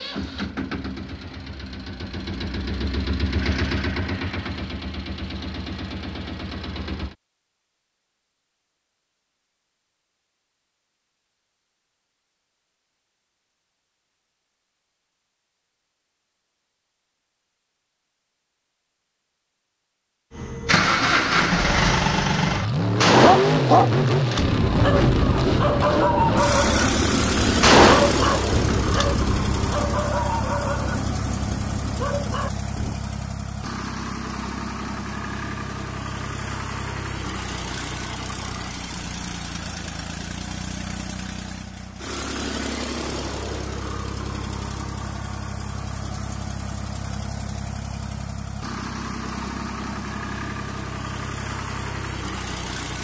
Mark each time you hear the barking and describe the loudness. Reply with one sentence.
The barking can be heard from 23.2 to 33.0 s, getting quieter.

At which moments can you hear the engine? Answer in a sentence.
The engine can be heard from 0.0 to 7.2 s and from 20.3 to 53.0 s.